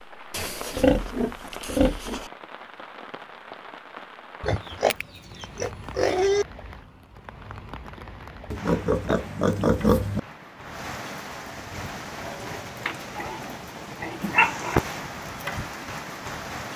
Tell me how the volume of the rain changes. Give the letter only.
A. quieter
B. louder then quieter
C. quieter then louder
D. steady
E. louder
E.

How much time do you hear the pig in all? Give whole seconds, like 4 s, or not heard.
7 s.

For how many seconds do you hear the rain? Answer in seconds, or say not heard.
17 s.